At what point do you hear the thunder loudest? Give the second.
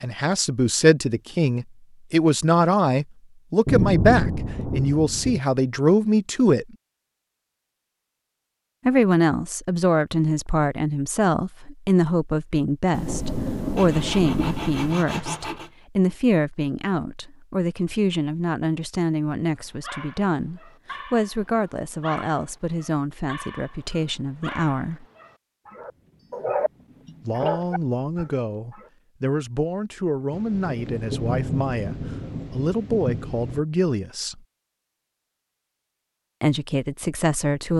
4 s.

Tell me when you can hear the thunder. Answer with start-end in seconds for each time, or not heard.
3.6-5.4, 12.9-14.9, 30.3-33.6.